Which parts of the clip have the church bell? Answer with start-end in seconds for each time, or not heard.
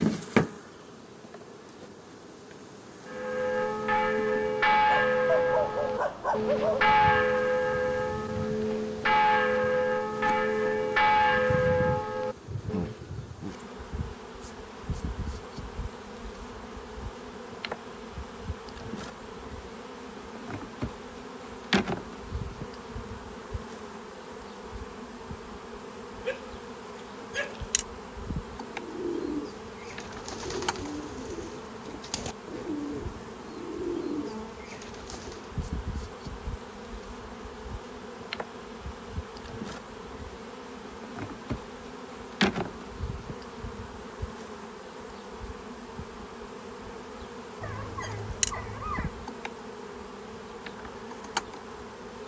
3.0-12.9.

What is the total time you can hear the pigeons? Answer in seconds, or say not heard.
7 s.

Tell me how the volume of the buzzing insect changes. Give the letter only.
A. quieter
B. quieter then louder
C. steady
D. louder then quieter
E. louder
E.